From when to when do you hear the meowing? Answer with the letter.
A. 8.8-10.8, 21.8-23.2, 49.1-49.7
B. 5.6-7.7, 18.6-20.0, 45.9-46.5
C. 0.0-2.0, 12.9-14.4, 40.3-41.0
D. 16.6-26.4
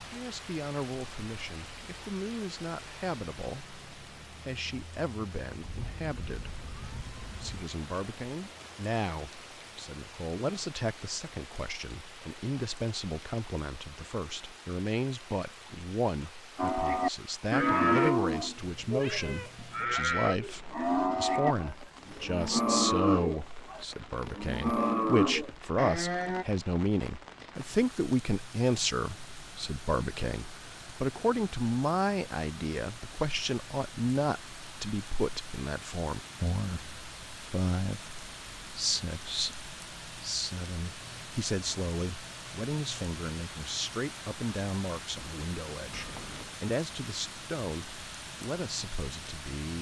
B.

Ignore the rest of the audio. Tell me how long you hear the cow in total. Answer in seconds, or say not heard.
10 s.